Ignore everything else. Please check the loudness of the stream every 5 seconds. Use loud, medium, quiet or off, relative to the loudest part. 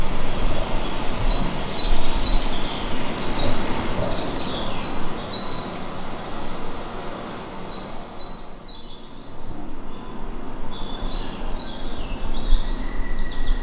loud, loud, off.